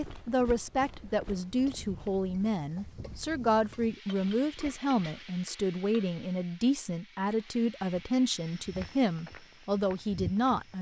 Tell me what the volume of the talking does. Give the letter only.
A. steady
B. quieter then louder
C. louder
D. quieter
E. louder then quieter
A.